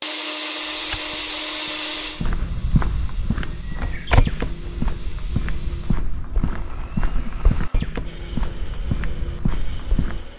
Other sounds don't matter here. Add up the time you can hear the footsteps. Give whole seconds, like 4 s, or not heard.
10 s.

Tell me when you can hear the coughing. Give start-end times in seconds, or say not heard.
not heard.